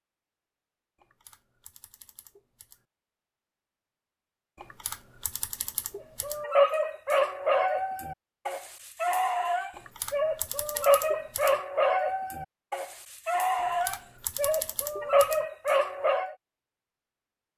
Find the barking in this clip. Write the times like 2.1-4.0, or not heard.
6.2-16.4.